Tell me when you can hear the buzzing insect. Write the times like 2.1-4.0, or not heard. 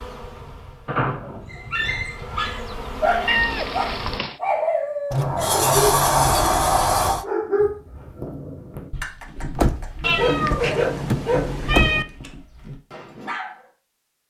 0.0-4.2.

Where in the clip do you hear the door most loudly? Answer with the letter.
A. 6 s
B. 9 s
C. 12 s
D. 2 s
A.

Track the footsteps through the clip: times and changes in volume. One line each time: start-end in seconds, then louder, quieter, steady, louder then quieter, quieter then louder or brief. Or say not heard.
not heard.